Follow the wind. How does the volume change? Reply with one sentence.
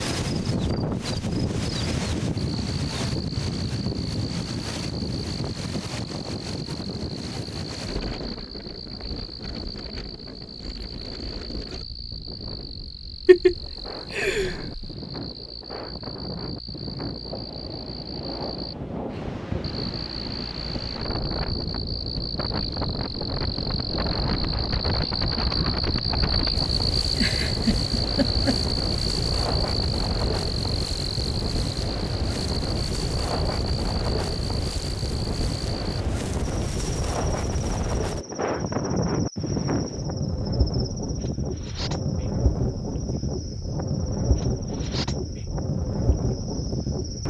The volume of the wind goes down, then up.